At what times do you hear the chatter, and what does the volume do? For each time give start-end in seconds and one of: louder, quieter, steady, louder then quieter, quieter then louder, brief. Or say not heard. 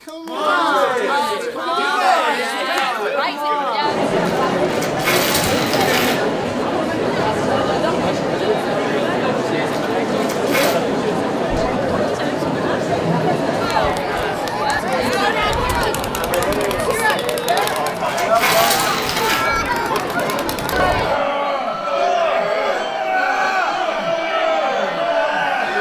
0.1-25.7 steady.